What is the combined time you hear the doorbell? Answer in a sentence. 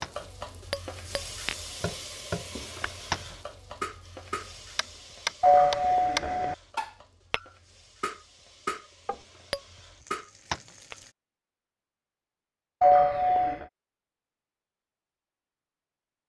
The doorbell can be heard for 2 seconds in total.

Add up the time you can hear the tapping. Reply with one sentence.
You can hear the tapping for 11 seconds altogether.